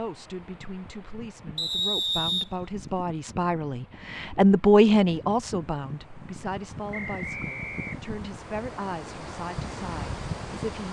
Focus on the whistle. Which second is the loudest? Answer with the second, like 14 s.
2 s.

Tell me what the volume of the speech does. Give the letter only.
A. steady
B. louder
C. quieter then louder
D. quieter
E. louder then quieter
E.